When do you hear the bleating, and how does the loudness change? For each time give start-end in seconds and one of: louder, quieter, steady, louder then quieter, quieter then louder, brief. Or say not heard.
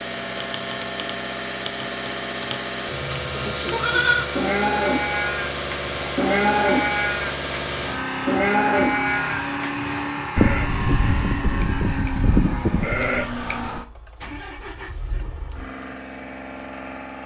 2.9-13.8 steady.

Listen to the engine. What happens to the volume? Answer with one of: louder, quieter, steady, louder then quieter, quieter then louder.
quieter.